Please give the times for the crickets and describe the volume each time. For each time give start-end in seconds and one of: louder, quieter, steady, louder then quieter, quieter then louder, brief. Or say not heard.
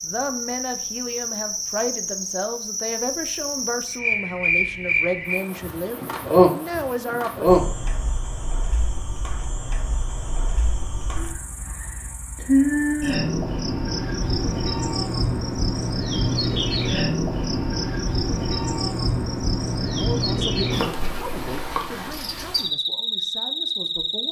0.0-24.2 steady.